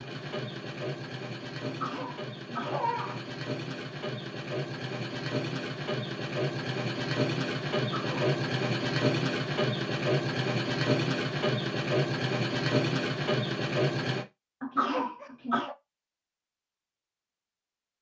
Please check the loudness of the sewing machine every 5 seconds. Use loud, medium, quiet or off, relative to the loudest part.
medium, loud, loud, off.